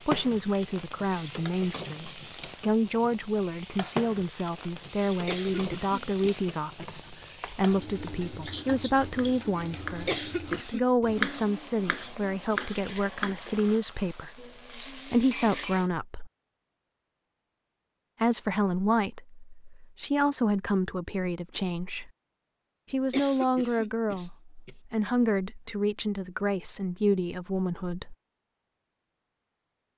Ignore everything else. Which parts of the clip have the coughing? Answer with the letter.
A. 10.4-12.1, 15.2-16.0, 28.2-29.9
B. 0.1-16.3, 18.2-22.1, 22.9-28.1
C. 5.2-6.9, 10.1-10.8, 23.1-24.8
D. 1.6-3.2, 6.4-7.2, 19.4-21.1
C.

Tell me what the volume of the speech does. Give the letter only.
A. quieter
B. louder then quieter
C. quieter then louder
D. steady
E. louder
D.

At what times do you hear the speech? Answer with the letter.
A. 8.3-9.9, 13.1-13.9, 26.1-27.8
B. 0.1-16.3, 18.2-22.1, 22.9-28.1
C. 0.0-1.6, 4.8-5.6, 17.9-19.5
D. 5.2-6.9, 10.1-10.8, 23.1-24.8
B.